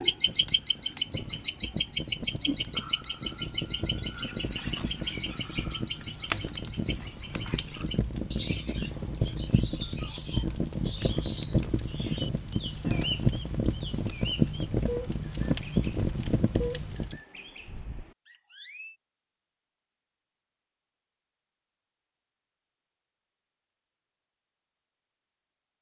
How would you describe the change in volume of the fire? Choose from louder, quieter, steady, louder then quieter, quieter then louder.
louder.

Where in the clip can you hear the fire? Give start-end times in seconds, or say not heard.
0.0-17.2.